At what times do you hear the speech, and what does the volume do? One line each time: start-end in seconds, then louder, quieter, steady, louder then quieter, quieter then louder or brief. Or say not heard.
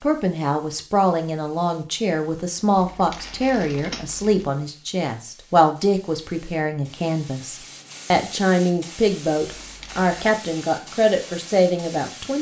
0.0-12.3 steady.